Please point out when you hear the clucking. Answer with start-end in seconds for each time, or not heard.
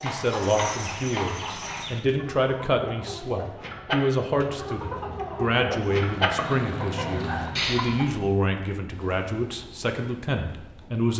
0.7-8.1.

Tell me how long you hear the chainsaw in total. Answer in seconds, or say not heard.
not heard.